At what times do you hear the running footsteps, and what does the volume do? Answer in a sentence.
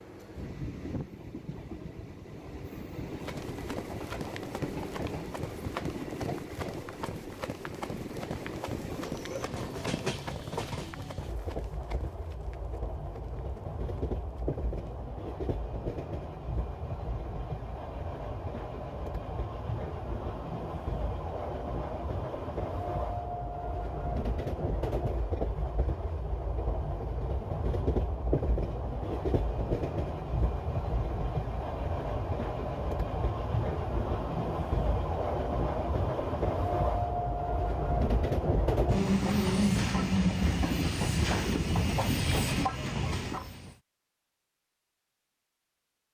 The running footsteps can be heard from 3.1 to 15.1 s, getting quieter.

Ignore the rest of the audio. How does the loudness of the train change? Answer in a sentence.
The volume of the train goes up.